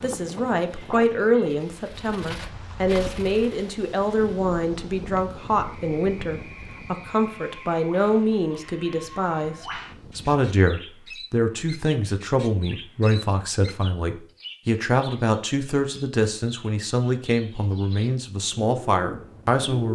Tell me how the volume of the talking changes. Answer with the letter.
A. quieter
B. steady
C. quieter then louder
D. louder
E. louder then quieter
B.